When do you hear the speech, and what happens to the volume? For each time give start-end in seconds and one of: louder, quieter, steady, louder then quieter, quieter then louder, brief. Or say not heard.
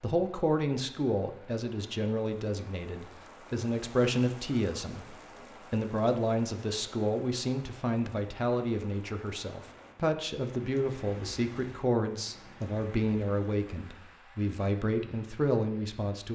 0.0-16.3 steady.